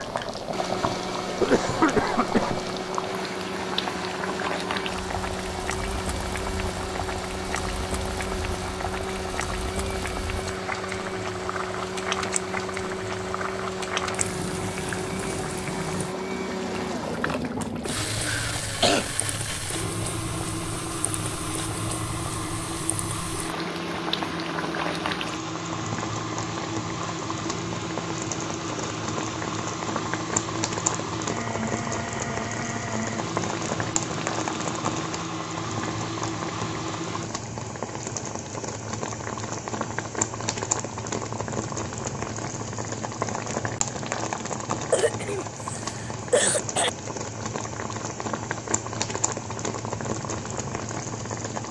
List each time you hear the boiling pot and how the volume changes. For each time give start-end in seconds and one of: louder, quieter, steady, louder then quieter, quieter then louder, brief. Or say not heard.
0.0-51.6 steady.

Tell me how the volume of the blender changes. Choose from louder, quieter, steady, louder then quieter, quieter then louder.
steady.